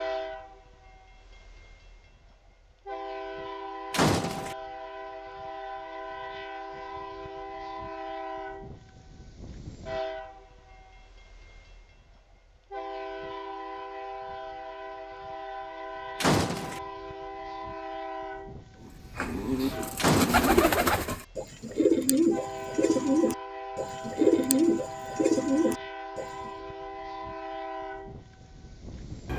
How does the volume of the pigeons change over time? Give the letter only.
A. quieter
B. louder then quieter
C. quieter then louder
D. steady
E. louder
D.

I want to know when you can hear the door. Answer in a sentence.
The door can be heard from 3.9 to 4.5 s, from 16.2 to 16.8 s and from 19.9 to 20.6 s.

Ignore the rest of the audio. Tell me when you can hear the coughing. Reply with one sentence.
The coughing can't be heard in this clip.